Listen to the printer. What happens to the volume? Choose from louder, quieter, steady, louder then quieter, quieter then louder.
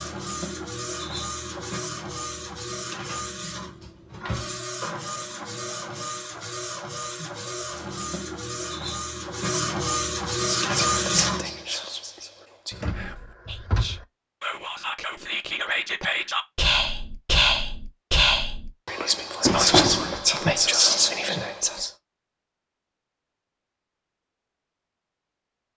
louder.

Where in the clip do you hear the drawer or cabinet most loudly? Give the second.
20 s.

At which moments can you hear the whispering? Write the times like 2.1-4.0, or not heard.
10.3-21.9.